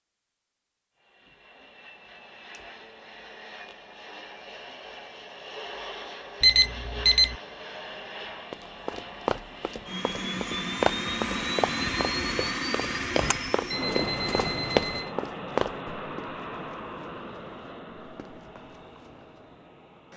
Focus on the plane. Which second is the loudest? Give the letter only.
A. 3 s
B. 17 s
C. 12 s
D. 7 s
C.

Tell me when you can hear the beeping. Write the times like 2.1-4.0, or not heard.
6.4-7.3, 13.7-15.2.